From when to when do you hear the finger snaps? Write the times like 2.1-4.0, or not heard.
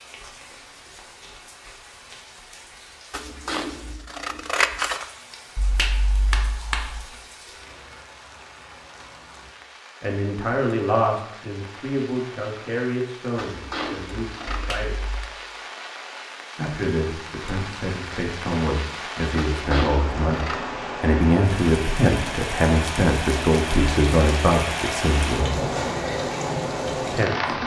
5.5-7.0, 14.5-15.3.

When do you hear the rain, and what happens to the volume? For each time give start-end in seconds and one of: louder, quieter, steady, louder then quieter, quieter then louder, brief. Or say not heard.
0.0-27.6 louder.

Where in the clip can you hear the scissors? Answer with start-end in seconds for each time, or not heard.
3.1-5.0, 13.3-14.8, 19.4-20.7.